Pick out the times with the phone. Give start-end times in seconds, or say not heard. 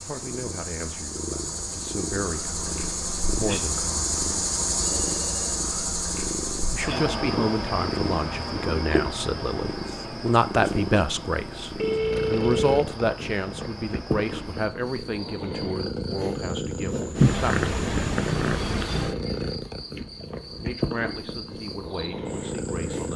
4.8-5.6, 11.8-12.8.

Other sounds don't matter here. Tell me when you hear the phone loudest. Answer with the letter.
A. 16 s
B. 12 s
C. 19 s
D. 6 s
B.